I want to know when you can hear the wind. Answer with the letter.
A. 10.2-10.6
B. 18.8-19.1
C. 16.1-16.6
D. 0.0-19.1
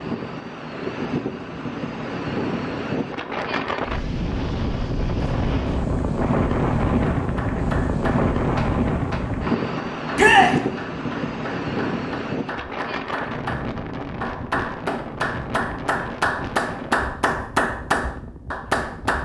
D.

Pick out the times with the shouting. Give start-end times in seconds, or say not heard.
10.2-10.6.